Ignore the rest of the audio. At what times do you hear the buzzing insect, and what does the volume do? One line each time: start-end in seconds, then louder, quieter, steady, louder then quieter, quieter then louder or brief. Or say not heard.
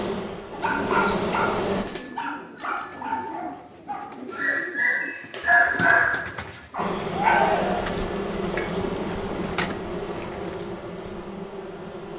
0.0-1.9 brief
6.8-12.1 quieter.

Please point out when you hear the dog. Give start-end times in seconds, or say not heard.
0.5-7.5.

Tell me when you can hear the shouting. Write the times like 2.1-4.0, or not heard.
7.2-8.0.